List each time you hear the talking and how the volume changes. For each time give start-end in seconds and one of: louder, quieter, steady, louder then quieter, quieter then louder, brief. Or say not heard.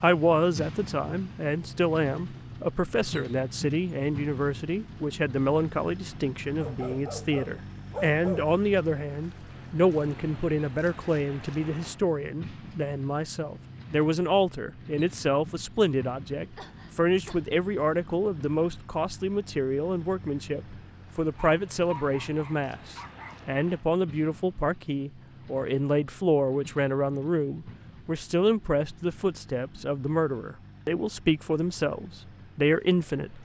0.0-33.4 steady.